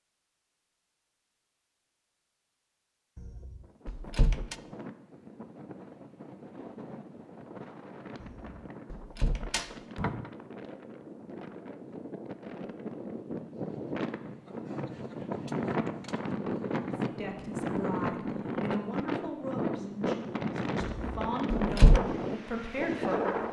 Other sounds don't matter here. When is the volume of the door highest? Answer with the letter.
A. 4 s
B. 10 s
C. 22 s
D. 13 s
C.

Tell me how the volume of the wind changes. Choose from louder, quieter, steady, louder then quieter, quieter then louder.
louder.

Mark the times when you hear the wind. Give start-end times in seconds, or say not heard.
3.6-23.4.